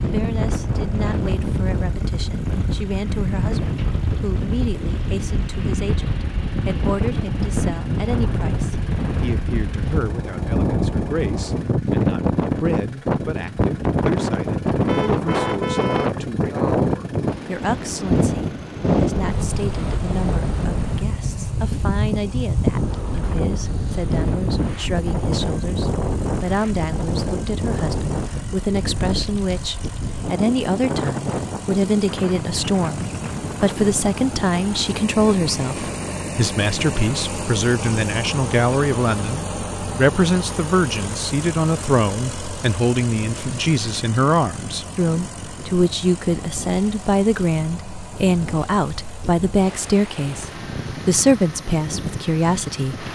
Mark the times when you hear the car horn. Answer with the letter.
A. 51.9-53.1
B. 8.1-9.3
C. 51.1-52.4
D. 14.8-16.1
D.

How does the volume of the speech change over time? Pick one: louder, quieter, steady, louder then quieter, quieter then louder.
louder.